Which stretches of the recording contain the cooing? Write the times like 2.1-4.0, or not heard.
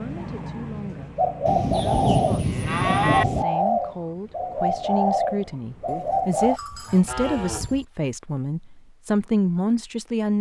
0.0-6.6.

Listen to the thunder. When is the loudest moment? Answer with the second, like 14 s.
2 s.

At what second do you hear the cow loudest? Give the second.
3 s.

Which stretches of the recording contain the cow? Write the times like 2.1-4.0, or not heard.
1.7-3.2, 5.8-7.8.